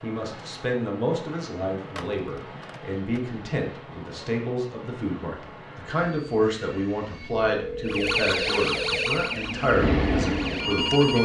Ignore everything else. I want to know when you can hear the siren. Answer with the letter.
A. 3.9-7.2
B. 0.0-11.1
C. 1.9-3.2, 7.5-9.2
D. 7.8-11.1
D.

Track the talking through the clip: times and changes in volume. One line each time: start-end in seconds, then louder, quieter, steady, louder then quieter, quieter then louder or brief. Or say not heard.
0.0-11.1 steady.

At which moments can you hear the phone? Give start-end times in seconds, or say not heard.
1.9-3.2, 7.5-9.2.